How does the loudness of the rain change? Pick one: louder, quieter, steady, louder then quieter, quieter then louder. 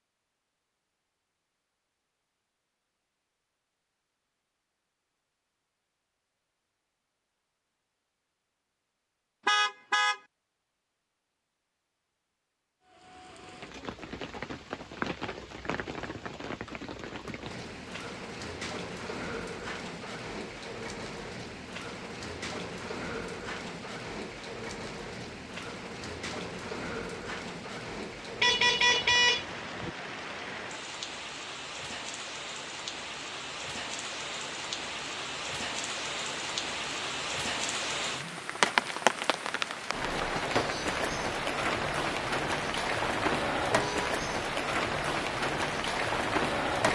louder.